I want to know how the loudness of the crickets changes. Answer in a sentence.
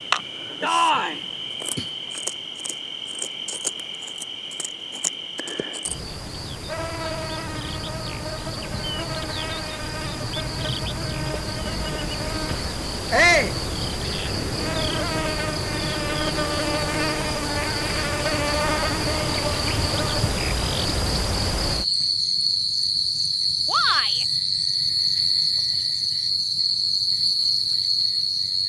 The loudness of the crickets goes up.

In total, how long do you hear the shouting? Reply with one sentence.
The shouting can be heard for 2 seconds in total.